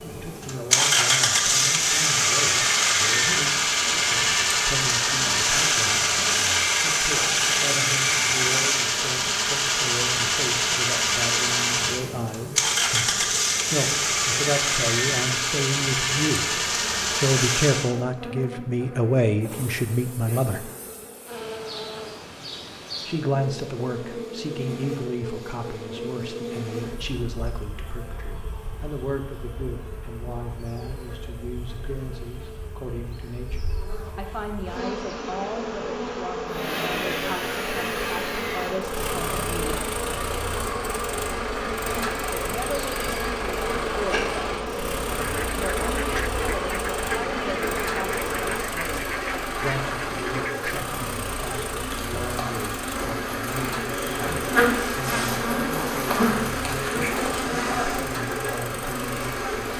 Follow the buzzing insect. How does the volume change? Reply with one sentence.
The volume of the buzzing insect goes up.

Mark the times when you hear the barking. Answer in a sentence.
The barking can't be heard in this clip.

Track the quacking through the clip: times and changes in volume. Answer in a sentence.
You can hear the quacking from 45.0 to 50.9 s, at a steady volume.